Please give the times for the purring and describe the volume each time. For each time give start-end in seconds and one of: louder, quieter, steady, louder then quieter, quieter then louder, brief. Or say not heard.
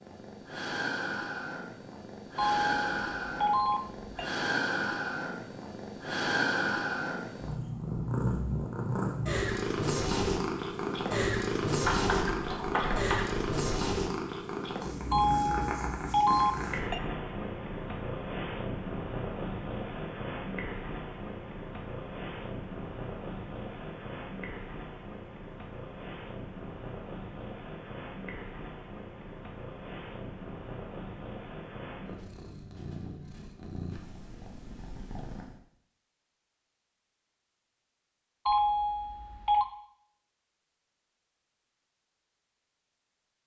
0.0-35.6 quieter.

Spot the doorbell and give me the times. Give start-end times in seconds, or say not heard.
2.4-4.2, 15.1-17.0, 38.5-39.6.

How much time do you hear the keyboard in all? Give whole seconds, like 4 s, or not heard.
2 s.